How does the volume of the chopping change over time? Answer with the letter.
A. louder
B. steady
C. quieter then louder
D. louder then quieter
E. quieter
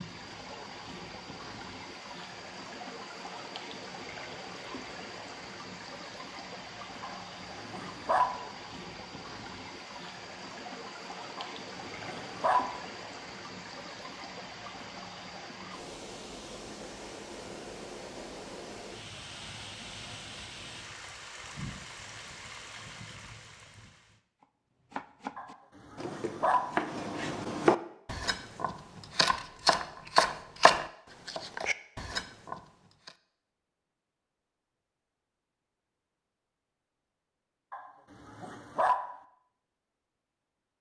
D.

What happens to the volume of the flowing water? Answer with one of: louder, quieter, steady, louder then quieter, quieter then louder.
steady.